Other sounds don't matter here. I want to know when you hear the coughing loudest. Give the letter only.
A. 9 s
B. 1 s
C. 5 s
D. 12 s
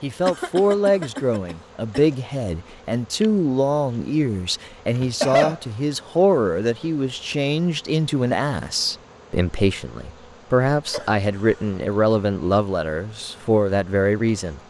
C.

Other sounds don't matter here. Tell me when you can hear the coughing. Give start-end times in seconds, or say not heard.
0.2-2.1, 5.0-5.6, 10.8-11.7.